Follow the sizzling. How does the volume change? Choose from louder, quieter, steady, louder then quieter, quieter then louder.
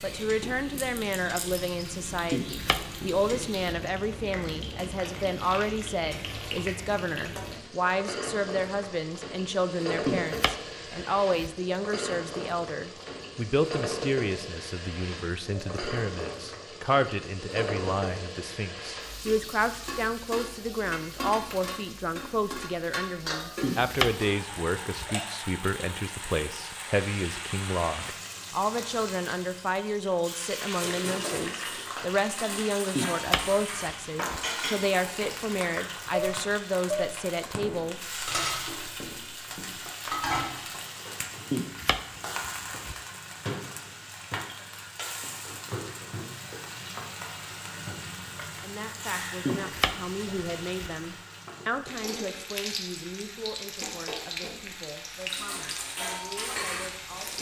steady.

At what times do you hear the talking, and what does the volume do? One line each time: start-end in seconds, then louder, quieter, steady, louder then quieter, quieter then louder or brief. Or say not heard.
0.0-38.0 steady
48.6-57.3 quieter.